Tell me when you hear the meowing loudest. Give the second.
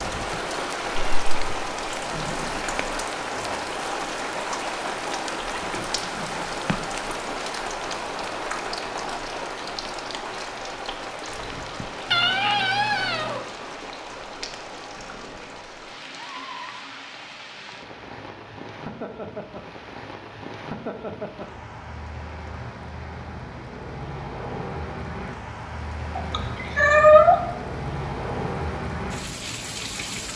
27 s.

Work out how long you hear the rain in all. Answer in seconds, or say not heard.
30 s.